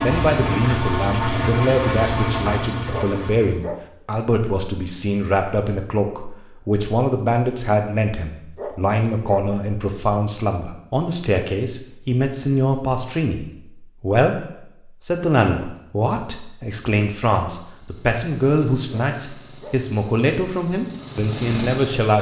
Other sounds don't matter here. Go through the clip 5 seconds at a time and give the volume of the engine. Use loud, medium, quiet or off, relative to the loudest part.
loud, off, off, quiet, medium.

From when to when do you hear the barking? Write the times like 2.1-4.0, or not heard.
2.9-4.0, 8.6-9.6, 18.9-19.9.